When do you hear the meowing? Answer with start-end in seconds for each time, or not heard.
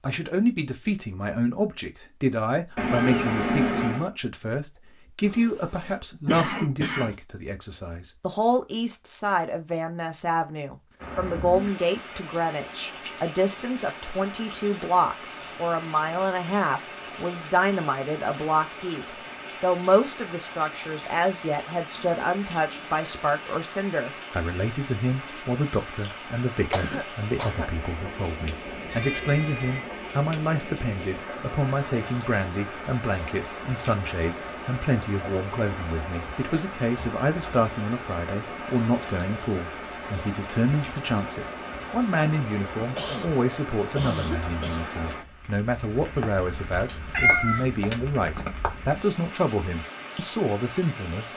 2.8-4.0, 28.7-29.9, 46.9-47.8.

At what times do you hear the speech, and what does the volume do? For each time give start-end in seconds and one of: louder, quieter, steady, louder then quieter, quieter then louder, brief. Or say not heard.
0.0-51.3 steady.